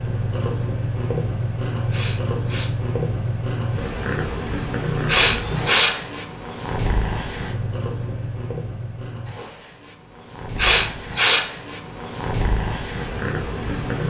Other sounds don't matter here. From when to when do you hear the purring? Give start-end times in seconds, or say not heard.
0.0-14.0.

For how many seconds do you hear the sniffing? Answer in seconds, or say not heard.
3 s.